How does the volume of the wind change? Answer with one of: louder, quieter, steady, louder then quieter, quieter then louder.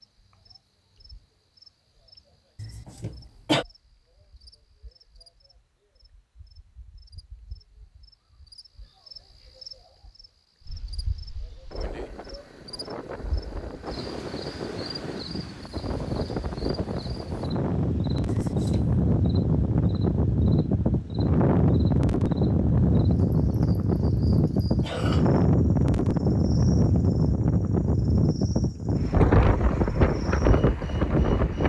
louder.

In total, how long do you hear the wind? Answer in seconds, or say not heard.
21 s.